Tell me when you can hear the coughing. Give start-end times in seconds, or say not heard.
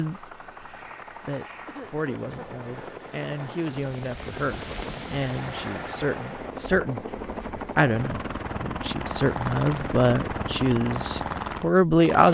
1.6-2.5.